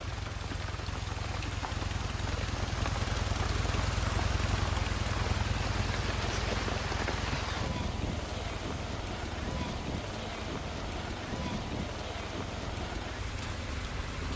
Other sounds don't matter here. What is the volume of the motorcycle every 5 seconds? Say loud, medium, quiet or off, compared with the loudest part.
loud, loud, medium.